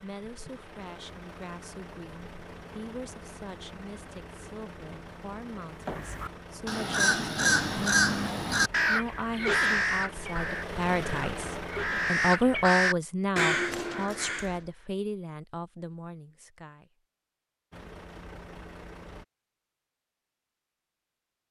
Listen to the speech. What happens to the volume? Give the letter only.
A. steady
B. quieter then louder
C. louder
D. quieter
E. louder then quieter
E.